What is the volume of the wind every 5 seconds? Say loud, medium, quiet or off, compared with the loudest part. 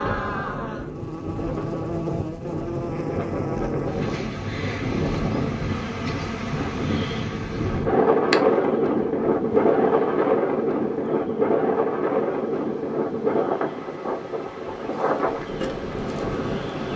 medium, loud, loud, medium.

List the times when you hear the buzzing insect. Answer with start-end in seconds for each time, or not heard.
0.0-16.9.